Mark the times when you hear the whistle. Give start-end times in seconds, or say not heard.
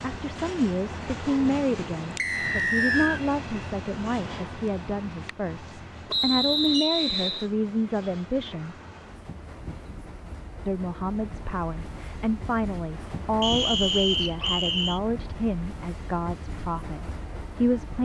2.1-3.2, 6.1-7.5, 13.4-15.0.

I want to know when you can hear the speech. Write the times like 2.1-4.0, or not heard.
0.0-8.8, 10.7-18.0.